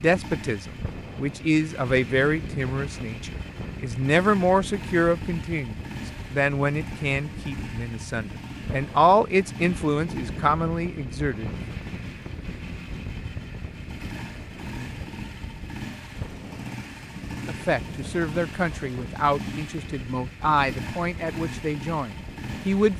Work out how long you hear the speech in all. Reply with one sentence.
The speech can be heard for 17 seconds in total.